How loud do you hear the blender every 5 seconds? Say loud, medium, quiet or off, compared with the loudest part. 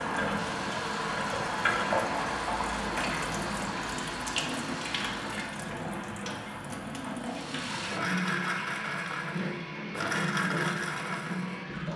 medium, loud, loud.